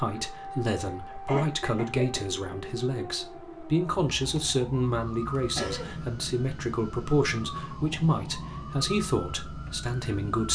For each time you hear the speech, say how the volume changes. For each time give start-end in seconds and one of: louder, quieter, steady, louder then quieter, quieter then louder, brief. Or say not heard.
0.0-10.5 steady.